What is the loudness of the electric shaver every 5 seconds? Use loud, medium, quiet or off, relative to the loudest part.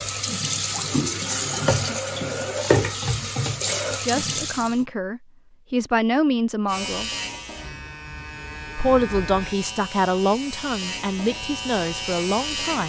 off, loud, loud.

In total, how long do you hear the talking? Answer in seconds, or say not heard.
7 s.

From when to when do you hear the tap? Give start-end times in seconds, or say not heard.
0.0-4.8.